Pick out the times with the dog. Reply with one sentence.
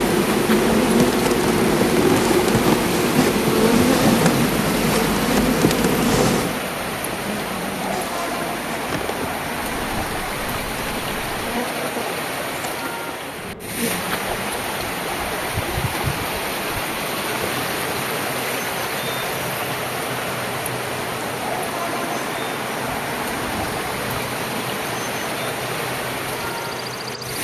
The dog can't be heard in this clip.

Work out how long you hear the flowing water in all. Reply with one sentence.
The flowing water can be heard for 27 seconds in total.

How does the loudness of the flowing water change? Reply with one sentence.
The loudness of the flowing water stays about the same.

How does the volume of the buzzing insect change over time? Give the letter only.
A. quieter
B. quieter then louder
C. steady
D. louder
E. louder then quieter
A.